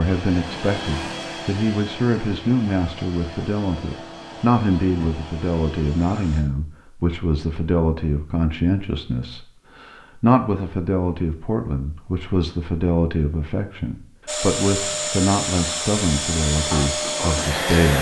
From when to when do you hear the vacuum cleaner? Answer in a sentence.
The vacuum cleaner can be heard from 0.0 to 6.5 s and from 14.2 to 17.9 s.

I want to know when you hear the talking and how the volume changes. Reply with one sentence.
The talking can be heard from 0.0 to 17.9 s, at a steady volume.